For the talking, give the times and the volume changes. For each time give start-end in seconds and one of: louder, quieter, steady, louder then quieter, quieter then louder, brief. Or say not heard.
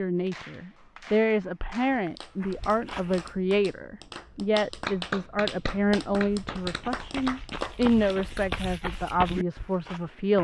0.0-10.3 steady.